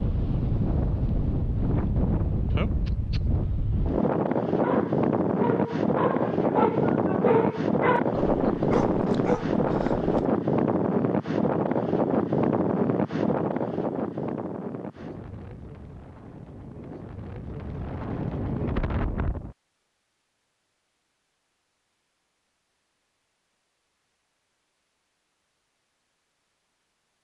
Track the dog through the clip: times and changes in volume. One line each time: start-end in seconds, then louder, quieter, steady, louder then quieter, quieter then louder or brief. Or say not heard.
4.5-10.3 louder then quieter.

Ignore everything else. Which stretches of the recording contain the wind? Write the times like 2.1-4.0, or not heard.
0.0-19.6.